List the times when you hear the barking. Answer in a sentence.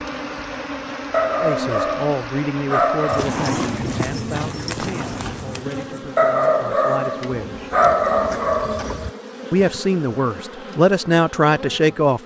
You can hear the barking from 1.1 to 3.3 s and from 6.2 to 9.1 s.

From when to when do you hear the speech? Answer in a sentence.
The speech can be heard from 1.4 to 7.7 s and from 9.5 to 12.2 s.